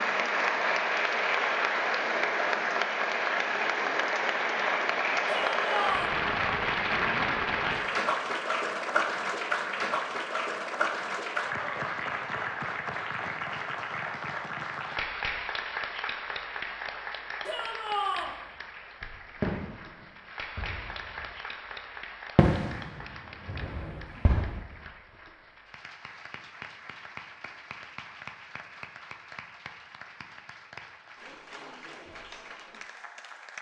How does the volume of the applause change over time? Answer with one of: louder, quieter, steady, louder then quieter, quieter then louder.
quieter.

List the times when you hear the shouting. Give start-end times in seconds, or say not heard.
5.2-6.2, 17.4-18.4.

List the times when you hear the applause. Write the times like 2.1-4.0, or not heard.
0.0-33.5.